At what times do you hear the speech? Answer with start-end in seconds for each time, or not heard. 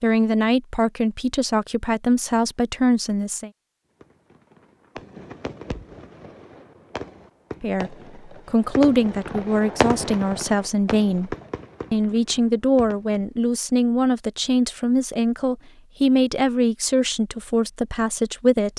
0.0-3.5, 7.6-18.7.